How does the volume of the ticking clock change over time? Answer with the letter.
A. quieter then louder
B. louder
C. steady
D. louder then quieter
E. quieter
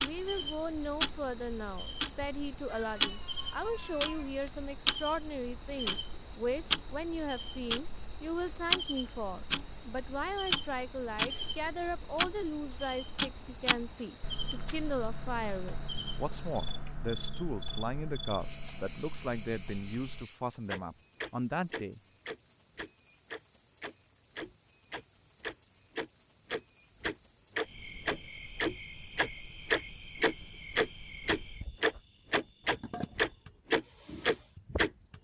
A.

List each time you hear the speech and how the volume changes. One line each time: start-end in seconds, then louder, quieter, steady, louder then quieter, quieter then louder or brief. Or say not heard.
0.0-22.0 steady.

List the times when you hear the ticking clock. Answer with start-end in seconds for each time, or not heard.
0.0-34.9.